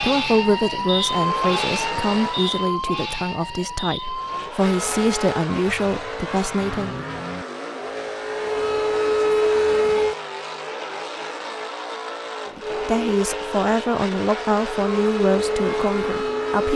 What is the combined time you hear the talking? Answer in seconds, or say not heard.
11 s.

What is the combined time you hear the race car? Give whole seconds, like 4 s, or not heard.
15 s.